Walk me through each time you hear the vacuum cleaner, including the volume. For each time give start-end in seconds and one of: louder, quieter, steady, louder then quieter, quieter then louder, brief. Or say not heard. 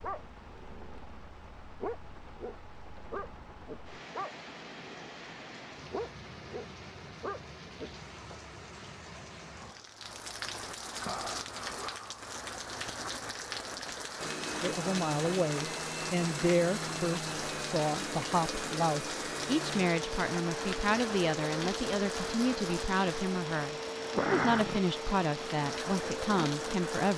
14.2-27.1 steady.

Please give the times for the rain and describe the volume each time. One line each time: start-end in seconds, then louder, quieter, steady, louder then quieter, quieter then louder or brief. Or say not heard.
0.0-27.1 louder.